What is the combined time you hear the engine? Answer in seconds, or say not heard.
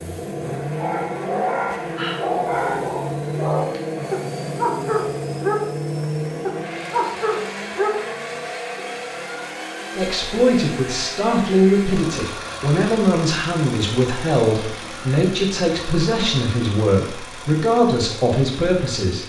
19 s.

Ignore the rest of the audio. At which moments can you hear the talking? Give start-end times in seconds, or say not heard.
9.9-19.2.